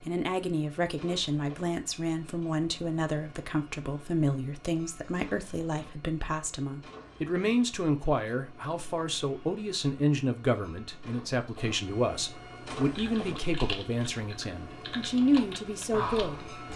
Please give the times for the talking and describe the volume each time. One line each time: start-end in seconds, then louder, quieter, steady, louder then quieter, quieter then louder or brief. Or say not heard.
0.0-16.4 steady.